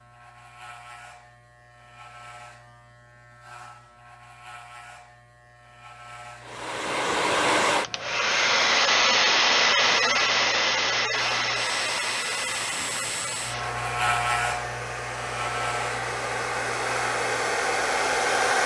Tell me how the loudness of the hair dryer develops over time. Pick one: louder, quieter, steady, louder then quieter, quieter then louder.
quieter then louder.